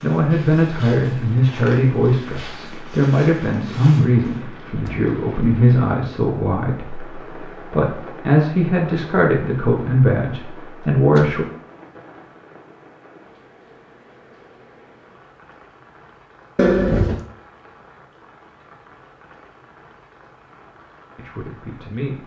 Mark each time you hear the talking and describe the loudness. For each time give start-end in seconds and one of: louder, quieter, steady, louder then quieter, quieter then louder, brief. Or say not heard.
0.0-11.4 steady
21.1-22.2 brief.